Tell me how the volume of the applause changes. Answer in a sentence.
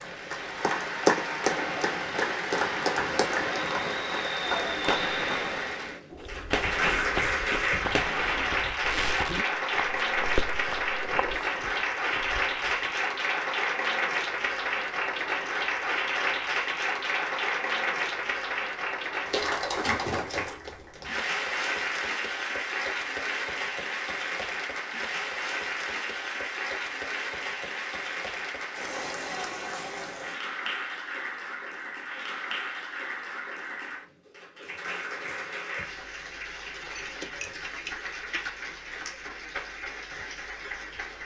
The volume of the applause goes down.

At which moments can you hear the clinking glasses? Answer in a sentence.
You can hear the clinking glasses from 37.0 to 38.5 s.